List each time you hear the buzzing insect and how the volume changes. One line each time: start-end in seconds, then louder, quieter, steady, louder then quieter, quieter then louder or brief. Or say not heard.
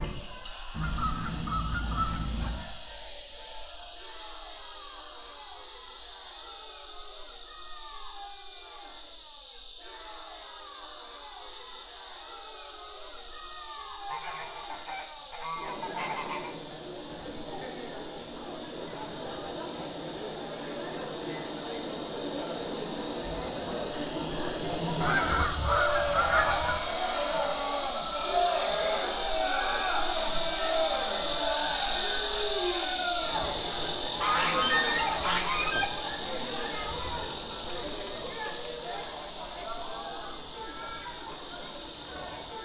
0.0-42.6 louder then quieter.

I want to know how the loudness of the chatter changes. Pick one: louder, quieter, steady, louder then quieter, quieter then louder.
louder then quieter.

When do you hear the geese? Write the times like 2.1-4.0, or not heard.
0.7-2.6, 14.1-16.6, 25.0-26.8, 34.1-35.9.